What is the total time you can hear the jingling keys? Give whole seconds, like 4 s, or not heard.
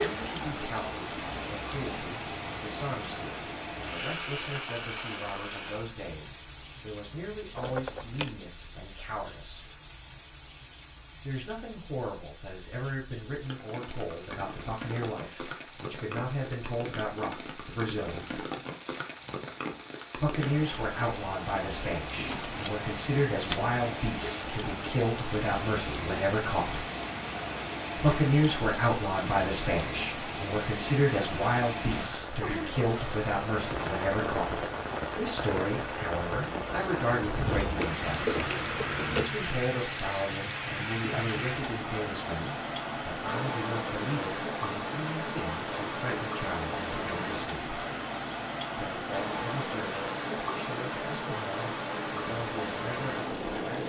5 s.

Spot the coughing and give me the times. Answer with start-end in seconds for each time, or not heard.
not heard.